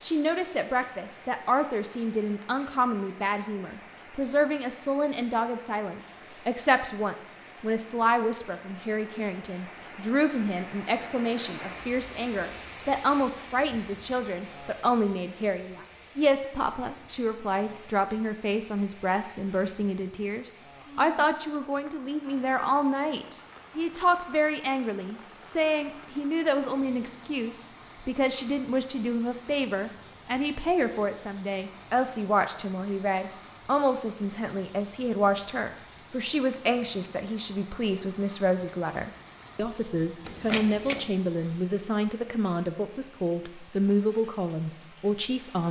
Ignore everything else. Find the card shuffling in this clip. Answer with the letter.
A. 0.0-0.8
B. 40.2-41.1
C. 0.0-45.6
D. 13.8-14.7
B.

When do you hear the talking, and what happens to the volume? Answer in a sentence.
You can hear the talking from 0.0 to 45.6 s, at a steady volume.